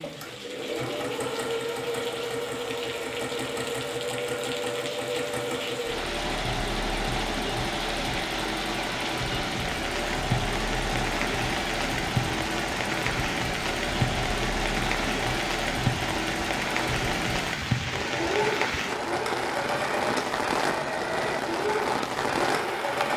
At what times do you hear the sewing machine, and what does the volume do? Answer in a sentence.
You can hear the sewing machine from 0.0 to 23.1 s, at a steady volume.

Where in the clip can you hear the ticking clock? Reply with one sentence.
You can't hear the ticking clock here.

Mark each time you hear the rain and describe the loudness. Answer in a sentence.
The rain can be heard from 0.0 to 23.1 s, getting louder.